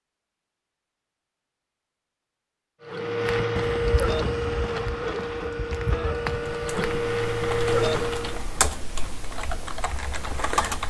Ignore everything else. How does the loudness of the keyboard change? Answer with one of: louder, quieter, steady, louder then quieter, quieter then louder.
louder then quieter.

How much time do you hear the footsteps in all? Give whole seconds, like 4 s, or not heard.
4 s.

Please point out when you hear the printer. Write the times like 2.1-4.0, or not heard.
2.8-8.4.